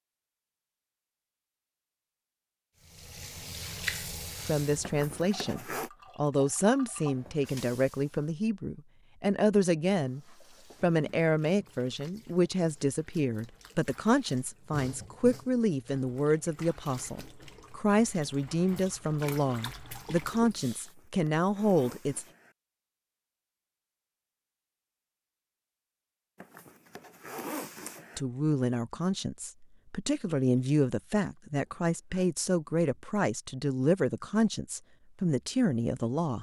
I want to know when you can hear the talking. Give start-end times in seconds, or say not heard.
4.5-10.2, 10.8-22.2, 28.1-36.3.